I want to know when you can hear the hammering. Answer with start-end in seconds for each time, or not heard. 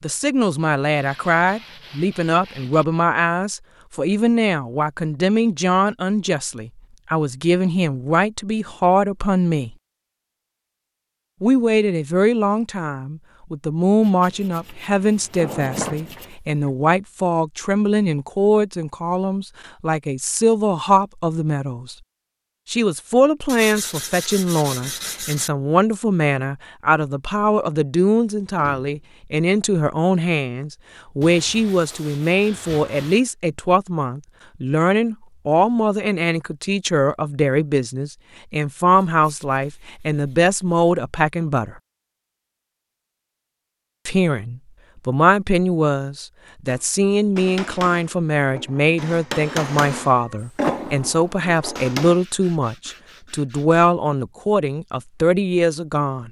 46.6-52.2.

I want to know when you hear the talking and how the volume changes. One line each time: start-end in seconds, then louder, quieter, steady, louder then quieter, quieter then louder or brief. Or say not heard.
0.0-9.8 steady
11.4-21.9 steady
22.6-41.8 steady
44.0-56.2 steady.